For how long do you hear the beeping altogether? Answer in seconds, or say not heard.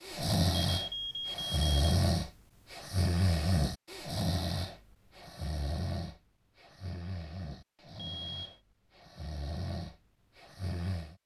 2 s.